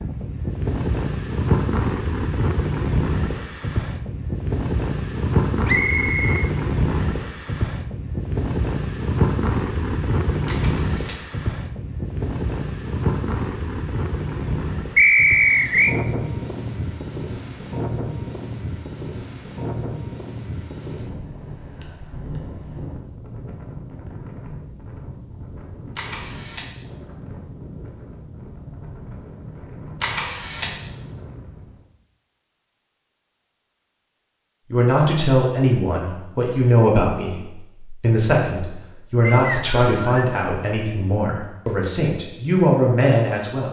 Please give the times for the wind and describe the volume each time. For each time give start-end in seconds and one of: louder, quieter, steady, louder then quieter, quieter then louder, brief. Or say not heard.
0.0-31.9 quieter.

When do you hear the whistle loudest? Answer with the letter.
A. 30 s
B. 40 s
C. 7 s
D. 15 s
D.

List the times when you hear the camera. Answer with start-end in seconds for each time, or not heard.
10.4-11.2, 25.9-26.7, 30.0-30.8.